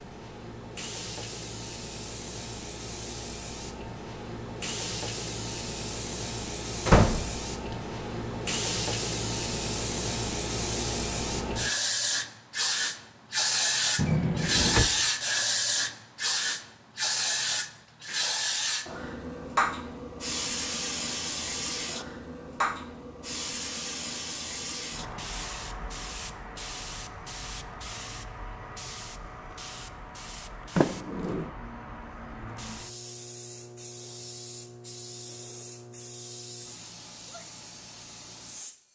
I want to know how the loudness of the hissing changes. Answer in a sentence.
The loudness of the hissing goes up, then down.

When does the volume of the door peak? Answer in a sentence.
The volume of the door peaks at 7 seconds.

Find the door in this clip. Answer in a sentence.
The door can be heard from 6.8 to 7.3 s, from 13.9 to 14.9 s and from 30.8 to 31.5 s.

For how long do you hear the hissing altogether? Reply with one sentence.
You can hear the hissing for 39 seconds altogether.